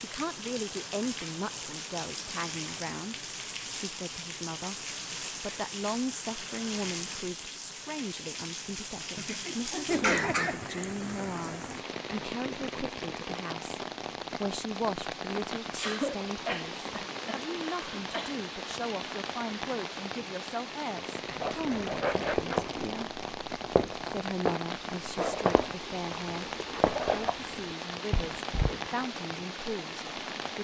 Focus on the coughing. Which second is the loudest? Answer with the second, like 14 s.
10 s.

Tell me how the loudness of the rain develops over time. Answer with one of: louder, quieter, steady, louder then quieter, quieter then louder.
steady.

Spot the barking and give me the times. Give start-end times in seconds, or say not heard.
not heard.